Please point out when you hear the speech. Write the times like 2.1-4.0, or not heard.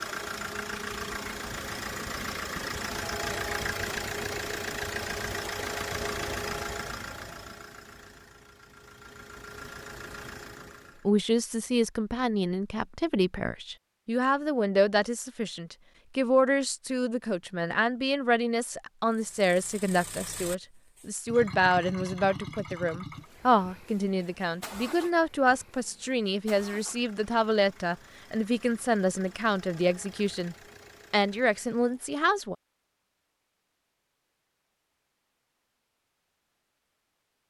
11.1-32.5.